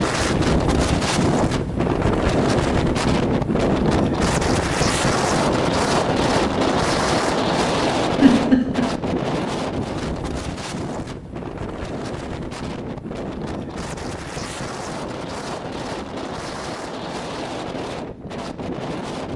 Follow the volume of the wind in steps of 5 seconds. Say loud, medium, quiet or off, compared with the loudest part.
loud, loud, medium, medium.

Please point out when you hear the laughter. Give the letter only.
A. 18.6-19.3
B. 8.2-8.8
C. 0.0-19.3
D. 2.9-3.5
B.